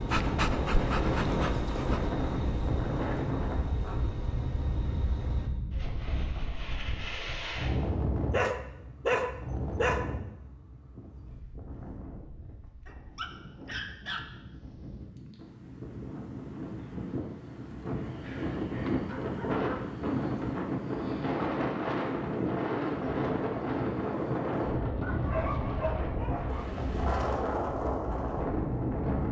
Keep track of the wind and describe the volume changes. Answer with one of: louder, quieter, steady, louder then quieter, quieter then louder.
quieter then louder.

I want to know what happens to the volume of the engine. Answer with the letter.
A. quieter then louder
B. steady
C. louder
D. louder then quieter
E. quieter
E.